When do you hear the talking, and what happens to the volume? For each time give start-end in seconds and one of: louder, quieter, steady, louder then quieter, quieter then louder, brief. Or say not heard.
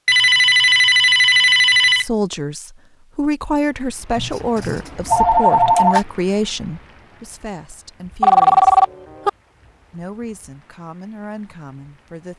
1.9-8.8 quieter
9.9-12.3 brief.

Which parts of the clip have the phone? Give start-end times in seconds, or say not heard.
0.1-2.0, 4.2-6.0, 8.2-9.3.